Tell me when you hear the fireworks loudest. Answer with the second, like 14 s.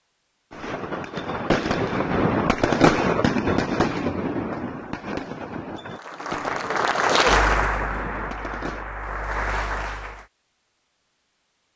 3 s.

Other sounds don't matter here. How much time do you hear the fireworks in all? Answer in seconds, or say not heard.
8 s.